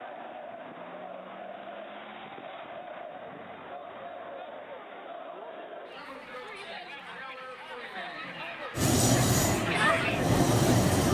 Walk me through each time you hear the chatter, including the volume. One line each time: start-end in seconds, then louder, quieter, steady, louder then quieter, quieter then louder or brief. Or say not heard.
0.0-11.1 louder.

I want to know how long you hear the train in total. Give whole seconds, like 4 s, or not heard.
2 s.